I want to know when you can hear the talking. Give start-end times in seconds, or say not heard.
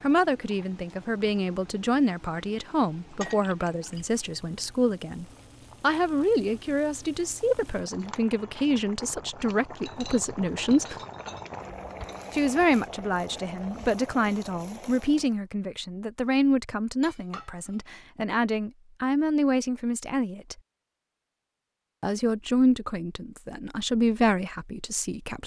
0.0-10.9, 12.3-20.6, 22.0-25.4.